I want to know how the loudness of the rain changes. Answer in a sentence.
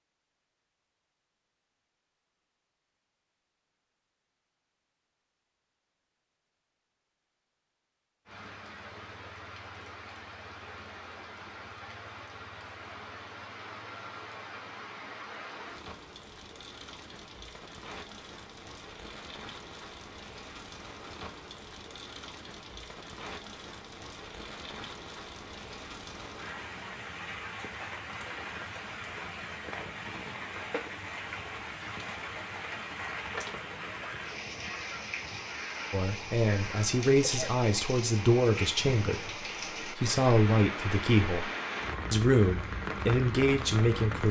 The volume of the rain goes up.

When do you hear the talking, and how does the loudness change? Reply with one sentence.
The talking can be heard from 35.9 to 41.5 s, getting quieter then louder; and briefly from 42.1 to 44.2 s.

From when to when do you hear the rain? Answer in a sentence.
The rain can be heard from 8.2 to 44.2 s.